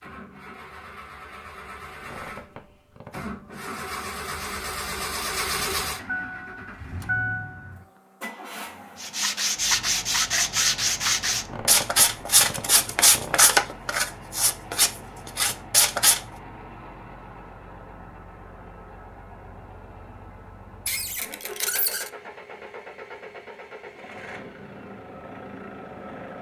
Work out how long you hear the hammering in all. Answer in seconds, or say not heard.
not heard.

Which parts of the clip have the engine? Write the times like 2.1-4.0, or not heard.
0.0-26.3.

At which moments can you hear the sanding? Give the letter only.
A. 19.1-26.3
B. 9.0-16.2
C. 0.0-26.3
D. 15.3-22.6
B.